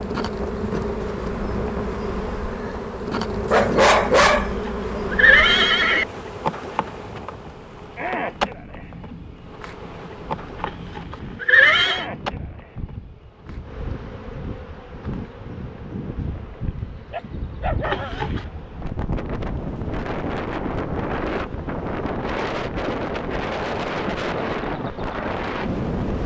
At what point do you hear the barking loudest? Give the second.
4 s.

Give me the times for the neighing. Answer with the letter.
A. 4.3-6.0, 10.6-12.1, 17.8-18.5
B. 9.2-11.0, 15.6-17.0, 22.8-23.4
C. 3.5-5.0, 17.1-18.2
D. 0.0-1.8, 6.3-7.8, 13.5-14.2
A.